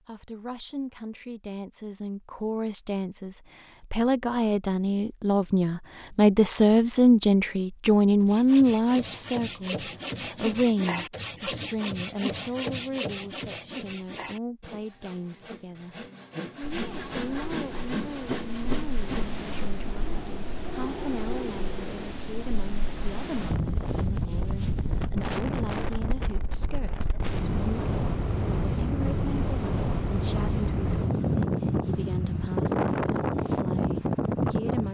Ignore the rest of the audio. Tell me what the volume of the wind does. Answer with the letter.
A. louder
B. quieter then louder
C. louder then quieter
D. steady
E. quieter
A.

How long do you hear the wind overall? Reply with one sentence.
You can hear the wind for 18 seconds altogether.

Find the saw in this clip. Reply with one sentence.
You can hear the saw from 8.2 to 19.4 s.